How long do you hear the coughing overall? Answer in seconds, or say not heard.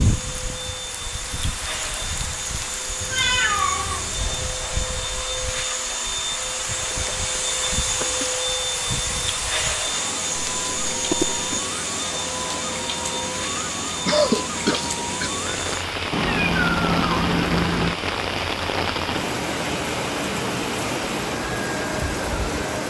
3 s.